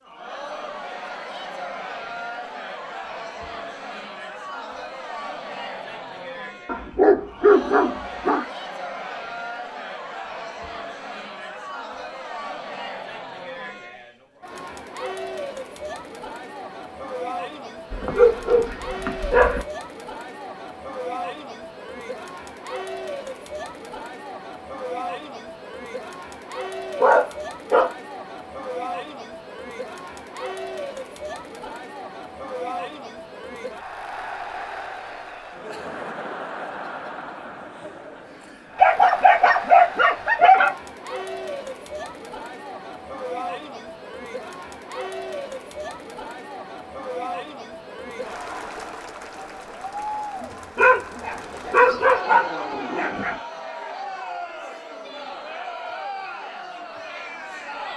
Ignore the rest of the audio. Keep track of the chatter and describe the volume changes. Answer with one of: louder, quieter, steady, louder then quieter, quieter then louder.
steady.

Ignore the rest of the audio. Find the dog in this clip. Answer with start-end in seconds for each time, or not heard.
6.7-8.4, 17.9-19.6, 27.0-27.9, 38.8-40.8, 50.8-53.4.